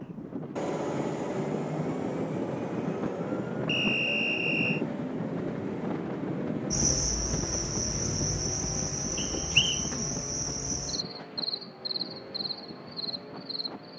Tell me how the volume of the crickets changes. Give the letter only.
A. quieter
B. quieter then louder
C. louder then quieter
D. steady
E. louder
A.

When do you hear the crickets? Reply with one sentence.
You can hear the crickets from 6.7 to 13.9 s.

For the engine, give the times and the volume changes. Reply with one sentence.
The engine can be heard from 0.0 to 13.9 s, getting quieter.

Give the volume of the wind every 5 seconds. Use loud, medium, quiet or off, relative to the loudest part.
loud, loud, medium.